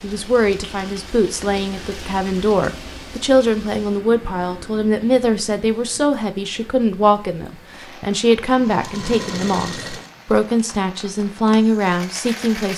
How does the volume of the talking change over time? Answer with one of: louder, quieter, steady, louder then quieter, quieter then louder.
steady.